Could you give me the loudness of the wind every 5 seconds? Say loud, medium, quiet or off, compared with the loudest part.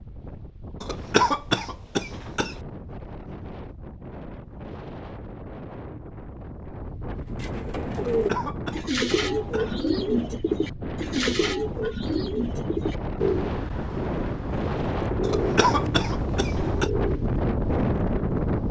quiet, medium, medium, loud.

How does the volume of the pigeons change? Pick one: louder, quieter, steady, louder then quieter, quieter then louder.
quieter.